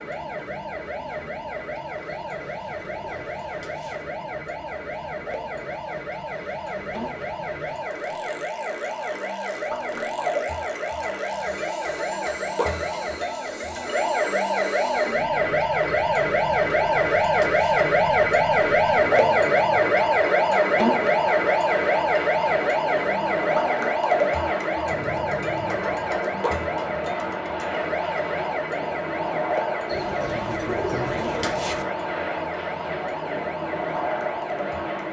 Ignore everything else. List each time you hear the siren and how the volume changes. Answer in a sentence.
You can hear the siren from 0.0 to 35.0 s, getting louder then quieter.